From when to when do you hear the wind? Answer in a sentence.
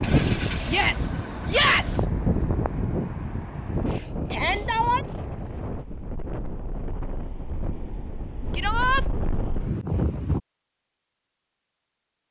You can hear the wind from 0.0 to 10.4 s.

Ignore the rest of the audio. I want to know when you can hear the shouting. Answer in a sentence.
The shouting can be heard from 0.7 to 2.0 s, from 4.3 to 5.0 s and from 8.6 to 9.1 s.